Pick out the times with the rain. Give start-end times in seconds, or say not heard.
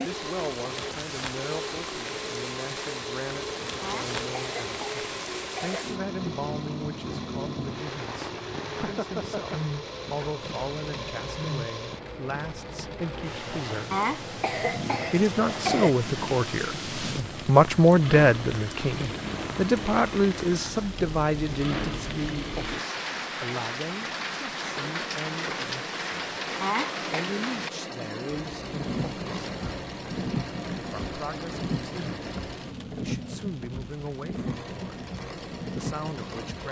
0.0-36.6.